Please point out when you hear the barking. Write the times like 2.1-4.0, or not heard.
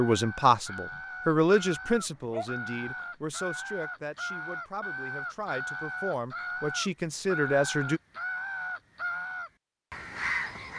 1.9-2.9.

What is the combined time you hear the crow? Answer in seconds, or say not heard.
11 s.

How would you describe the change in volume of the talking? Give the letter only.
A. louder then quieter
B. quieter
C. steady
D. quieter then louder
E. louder
D.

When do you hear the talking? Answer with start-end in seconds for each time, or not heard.
0.0-8.0.